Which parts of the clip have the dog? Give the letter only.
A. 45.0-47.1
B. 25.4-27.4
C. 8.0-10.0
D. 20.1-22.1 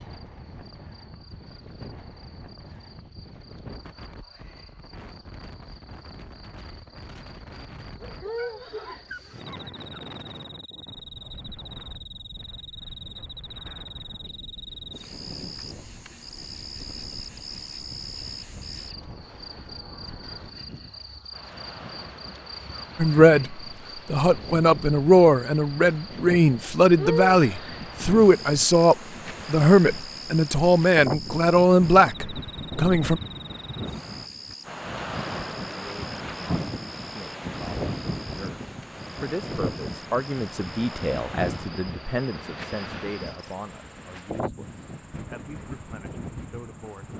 C.